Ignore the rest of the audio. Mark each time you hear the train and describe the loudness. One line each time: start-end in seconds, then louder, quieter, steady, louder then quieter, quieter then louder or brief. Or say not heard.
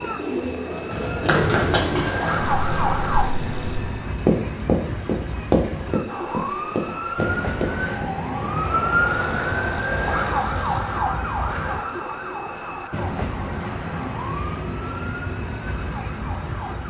0.0-16.8 steady.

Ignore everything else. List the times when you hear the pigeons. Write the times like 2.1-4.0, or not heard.
0.1-2.1.